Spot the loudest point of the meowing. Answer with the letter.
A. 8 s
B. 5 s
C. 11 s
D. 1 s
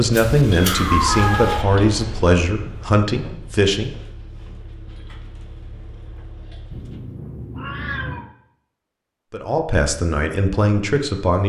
D.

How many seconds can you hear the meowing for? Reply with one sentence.
You can hear the meowing for 3 seconds altogether.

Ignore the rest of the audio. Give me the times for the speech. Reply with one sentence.
You can hear the speech from 0.0 to 4.0 s and from 9.3 to 11.4 s.